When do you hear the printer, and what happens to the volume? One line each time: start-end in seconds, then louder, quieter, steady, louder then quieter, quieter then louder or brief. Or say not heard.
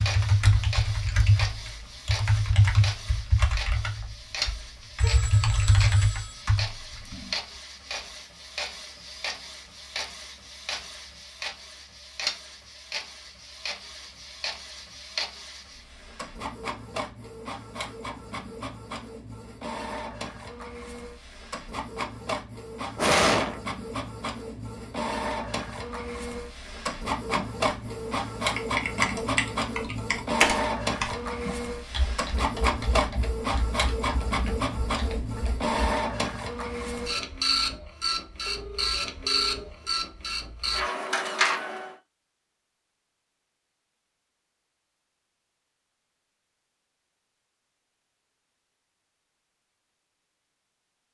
0.0-42.0 louder.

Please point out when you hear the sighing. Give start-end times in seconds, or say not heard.
22.9-23.6.